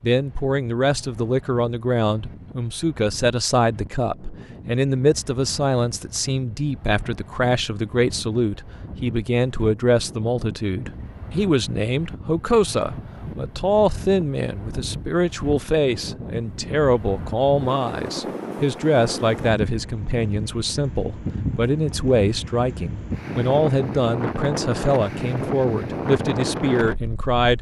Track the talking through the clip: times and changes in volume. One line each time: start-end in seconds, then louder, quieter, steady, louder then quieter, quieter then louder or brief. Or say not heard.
0.0-27.5 steady.